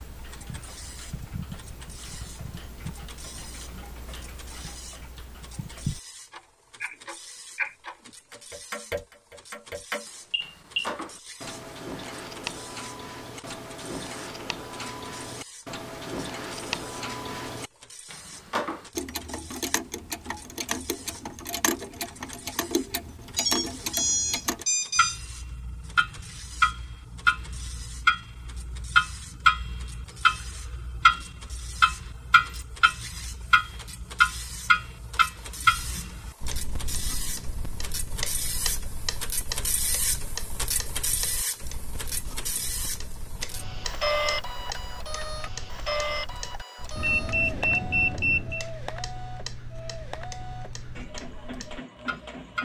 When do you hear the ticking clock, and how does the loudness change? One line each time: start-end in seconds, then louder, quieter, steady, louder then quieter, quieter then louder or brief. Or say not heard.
0.0-52.6 louder then quieter.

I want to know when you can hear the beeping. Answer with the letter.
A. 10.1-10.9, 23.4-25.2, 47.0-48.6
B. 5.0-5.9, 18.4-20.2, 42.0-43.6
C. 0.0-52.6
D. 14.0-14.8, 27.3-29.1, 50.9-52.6
A.